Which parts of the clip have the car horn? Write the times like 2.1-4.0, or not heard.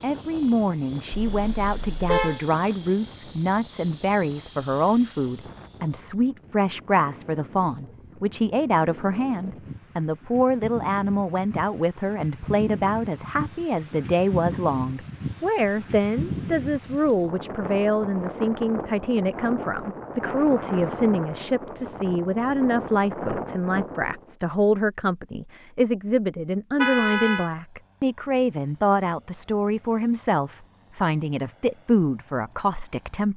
1.3-2.4, 26.8-27.5.